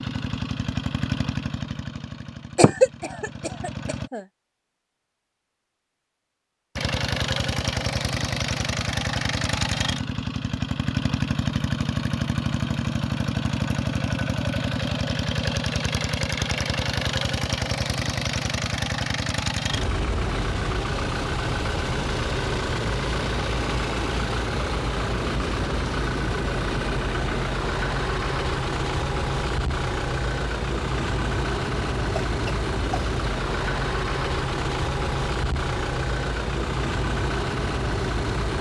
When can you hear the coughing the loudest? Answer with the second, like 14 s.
3 s.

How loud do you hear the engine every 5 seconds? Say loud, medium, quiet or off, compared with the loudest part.
medium, loud, loud, loud, loud, loud, loud, loud.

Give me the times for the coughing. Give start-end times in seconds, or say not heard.
2.5-4.2, 32.2-33.0.